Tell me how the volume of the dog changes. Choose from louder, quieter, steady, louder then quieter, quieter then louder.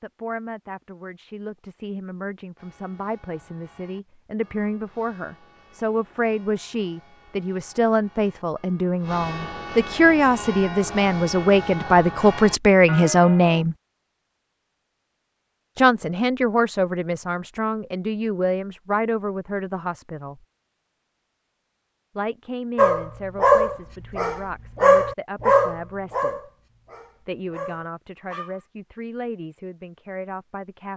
quieter.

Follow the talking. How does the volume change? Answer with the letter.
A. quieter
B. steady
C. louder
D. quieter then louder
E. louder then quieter
E.